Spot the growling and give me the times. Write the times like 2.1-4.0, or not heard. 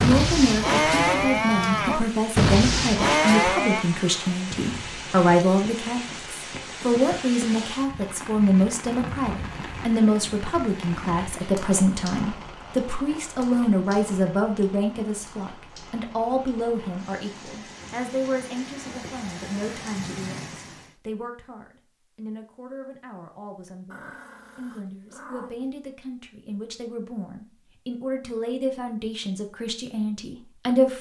23.9-25.7.